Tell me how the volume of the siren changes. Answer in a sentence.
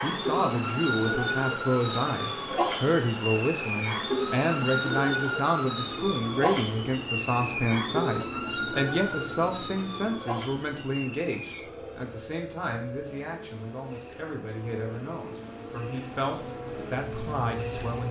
The volume of the siren goes down.